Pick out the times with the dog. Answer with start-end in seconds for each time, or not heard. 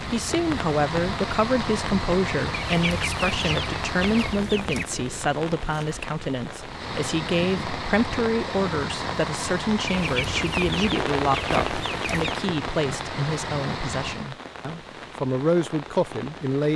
not heard.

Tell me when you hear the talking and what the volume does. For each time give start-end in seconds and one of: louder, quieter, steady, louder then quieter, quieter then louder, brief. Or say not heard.
0.0-16.7 steady.